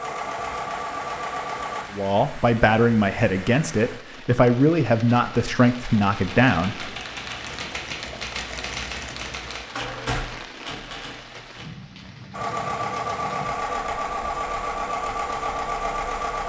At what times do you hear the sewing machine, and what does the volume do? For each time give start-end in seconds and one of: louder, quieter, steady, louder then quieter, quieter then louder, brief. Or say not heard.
0.0-1.9 brief
12.3-16.4 steady.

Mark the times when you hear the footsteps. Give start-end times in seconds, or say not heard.
not heard.